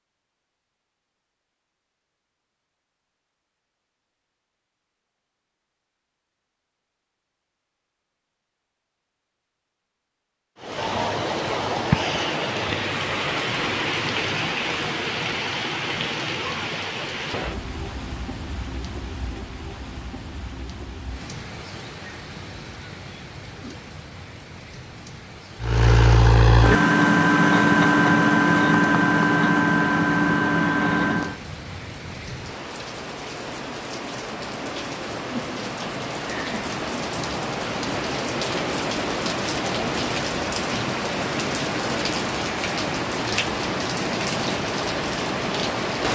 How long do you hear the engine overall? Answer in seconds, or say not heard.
6 s.